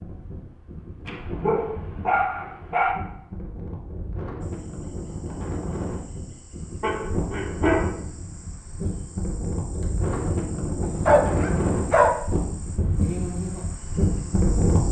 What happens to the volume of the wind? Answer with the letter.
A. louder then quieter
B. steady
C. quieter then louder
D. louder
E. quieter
D.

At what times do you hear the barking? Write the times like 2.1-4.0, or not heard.
1.1-3.0, 6.8-7.9, 10.8-12.1.